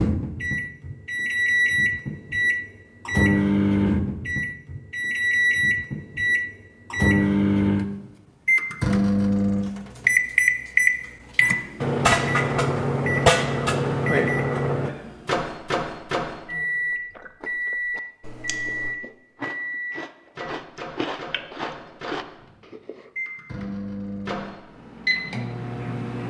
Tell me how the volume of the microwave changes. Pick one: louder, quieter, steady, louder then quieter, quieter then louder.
quieter.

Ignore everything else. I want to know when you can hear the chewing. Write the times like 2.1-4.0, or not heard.
16.7-23.1.